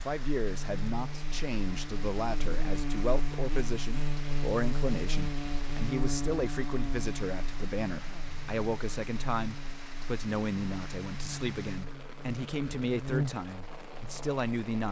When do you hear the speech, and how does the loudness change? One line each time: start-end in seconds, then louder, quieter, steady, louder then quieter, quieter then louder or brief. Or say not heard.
0.0-14.8 steady.